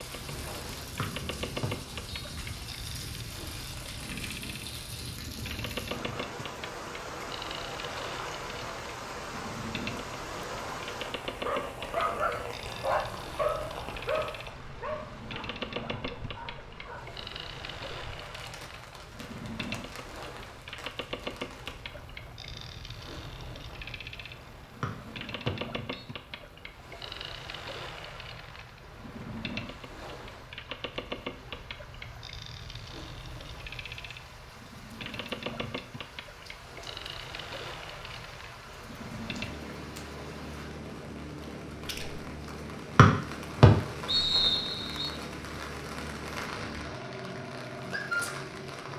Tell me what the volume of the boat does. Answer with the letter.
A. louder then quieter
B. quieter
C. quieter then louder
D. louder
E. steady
E.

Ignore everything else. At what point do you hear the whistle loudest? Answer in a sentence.
The volume of the whistle peaks at 44 seconds.